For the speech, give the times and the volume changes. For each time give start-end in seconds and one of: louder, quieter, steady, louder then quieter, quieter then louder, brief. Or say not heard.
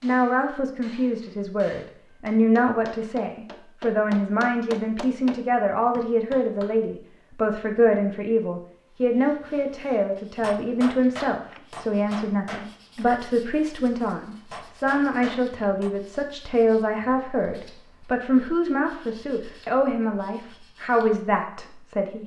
0.0-22.2 steady.